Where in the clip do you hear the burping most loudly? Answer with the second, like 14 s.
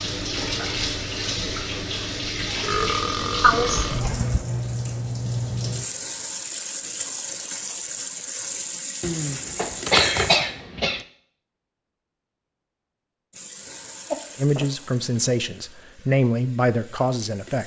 3 s.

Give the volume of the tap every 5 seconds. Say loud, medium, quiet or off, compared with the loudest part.
loud, loud, medium, quiet.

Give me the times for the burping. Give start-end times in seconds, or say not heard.
2.6-4.0, 14.1-14.7.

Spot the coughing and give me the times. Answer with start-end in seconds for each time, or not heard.
3.4-4.5, 9.0-11.1.